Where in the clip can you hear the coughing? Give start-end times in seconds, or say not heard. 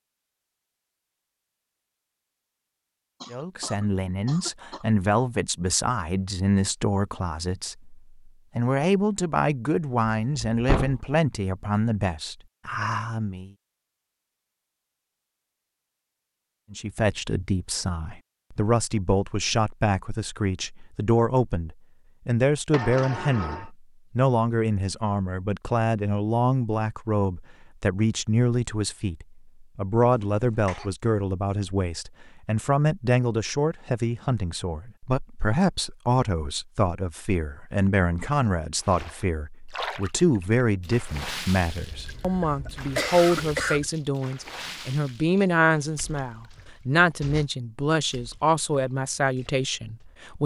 3.2-4.8, 30.0-30.9, 41.9-43.9.